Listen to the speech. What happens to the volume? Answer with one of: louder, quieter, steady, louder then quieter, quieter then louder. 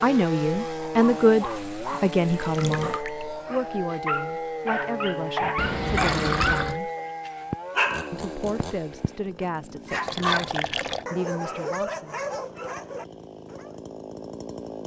quieter.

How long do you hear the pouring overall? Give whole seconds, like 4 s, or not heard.
3 s.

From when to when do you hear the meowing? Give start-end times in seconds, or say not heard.
not heard.